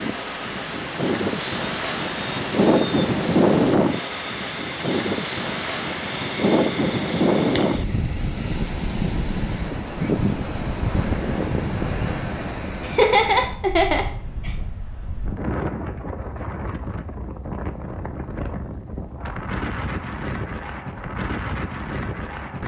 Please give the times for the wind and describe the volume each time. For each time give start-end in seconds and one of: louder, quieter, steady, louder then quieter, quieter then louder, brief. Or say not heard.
0.0-22.6 quieter.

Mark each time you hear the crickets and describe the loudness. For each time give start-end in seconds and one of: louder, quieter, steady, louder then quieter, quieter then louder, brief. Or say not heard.
0.0-13.1 louder.